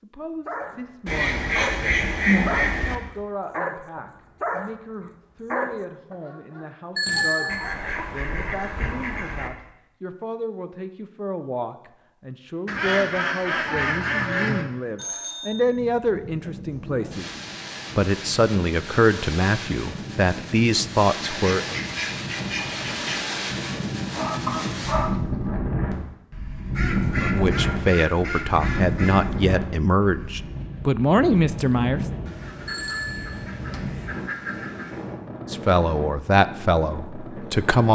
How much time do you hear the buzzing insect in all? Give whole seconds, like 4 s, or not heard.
not heard.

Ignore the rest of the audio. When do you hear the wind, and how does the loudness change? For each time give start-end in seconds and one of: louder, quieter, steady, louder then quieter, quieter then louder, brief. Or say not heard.
15.4-37.9 louder then quieter.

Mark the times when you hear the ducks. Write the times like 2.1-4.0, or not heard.
1.1-3.0, 7.5-9.5, 12.7-14.7, 21.2-23.2, 26.8-29.4, 32.2-35.1.